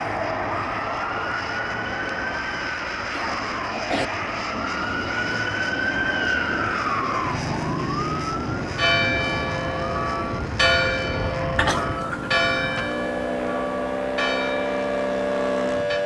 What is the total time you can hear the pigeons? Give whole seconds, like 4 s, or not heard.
not heard.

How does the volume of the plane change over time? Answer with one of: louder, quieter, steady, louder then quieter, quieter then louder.
steady.